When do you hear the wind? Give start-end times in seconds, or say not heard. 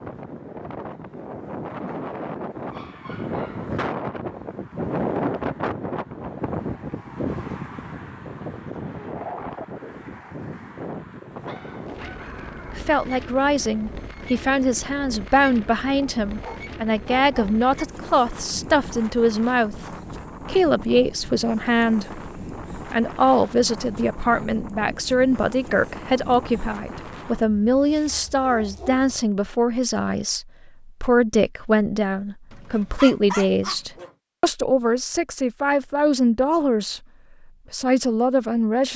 0.0-27.5.